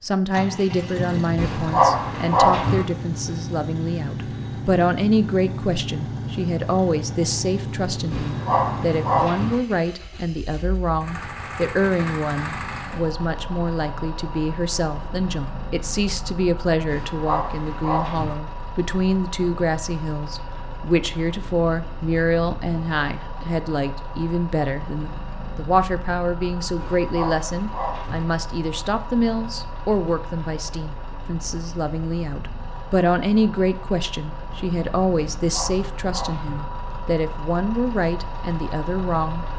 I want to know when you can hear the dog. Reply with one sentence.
The dog can be heard from 1.4 to 2.9 s, from 8.1 to 9.6 s, from 16.9 to 18.4 s, from 26.8 to 28.2 s and from 35.4 to 36.6 s.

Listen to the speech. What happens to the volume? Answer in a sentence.
The volume of the speech stays about the same.